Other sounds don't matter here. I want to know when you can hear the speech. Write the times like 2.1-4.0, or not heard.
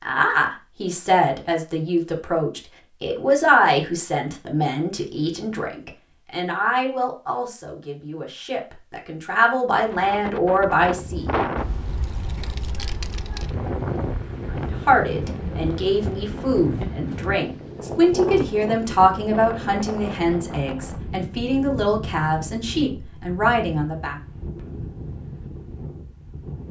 0.0-11.3, 14.7-24.1.